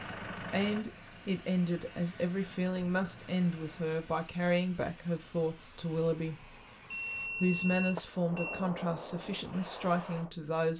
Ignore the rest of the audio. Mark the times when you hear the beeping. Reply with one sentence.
The beeping can be heard from 6.9 to 8.7 s.